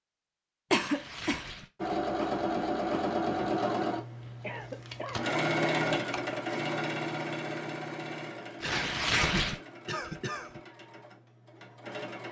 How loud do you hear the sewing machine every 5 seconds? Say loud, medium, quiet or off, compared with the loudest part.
loud, loud, quiet.